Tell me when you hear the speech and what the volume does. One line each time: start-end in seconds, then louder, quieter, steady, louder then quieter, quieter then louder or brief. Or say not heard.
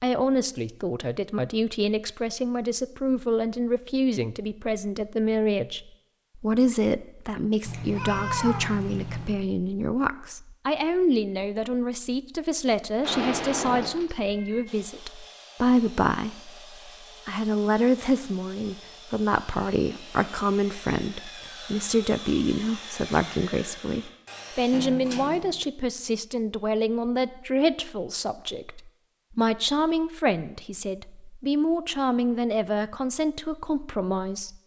0.0-34.5 steady.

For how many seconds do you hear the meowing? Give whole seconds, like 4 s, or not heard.
4 s.